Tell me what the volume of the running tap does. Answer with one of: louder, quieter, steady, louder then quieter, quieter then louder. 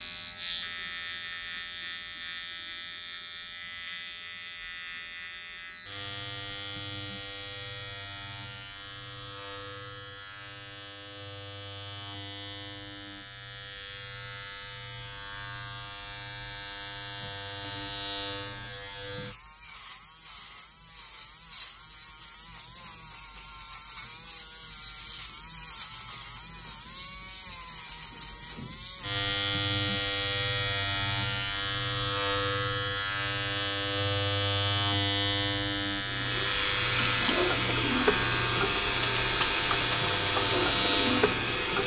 steady.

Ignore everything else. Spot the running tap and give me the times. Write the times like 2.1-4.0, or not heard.
36.0-41.8.